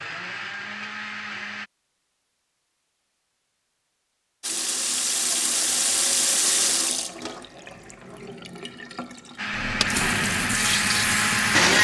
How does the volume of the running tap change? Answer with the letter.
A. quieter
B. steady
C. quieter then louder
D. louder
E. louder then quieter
C.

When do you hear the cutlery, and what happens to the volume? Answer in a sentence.
The cutlery can't be heard in this clip.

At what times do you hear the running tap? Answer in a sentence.
You can hear the running tap from 4.4 to 11.7 s.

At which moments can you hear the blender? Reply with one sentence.
You can hear the blender from 0.0 to 1.7 s and from 9.3 to 11.7 s.